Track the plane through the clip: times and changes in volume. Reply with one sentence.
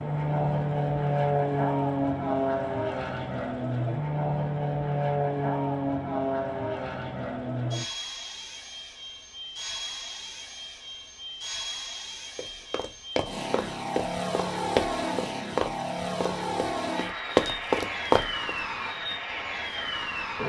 You can hear the plane from 0.0 to 20.4 s, getting quieter then louder.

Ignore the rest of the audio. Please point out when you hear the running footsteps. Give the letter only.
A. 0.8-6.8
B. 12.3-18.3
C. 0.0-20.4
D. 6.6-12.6
B.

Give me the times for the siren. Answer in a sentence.
You can't hear the siren here.